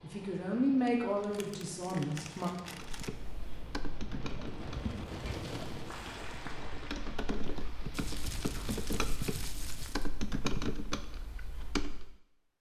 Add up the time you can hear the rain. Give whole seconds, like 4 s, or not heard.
9 s.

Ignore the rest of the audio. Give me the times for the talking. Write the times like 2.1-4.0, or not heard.
0.0-2.5.